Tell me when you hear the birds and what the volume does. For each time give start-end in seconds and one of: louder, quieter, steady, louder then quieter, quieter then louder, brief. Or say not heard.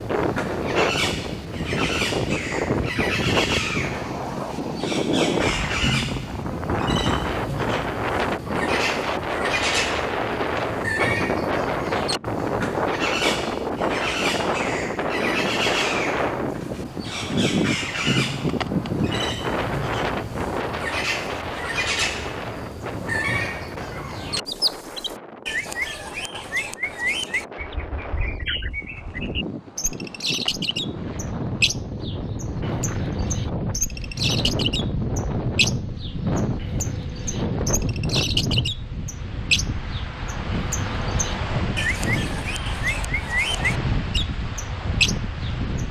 0.0-45.8 steady.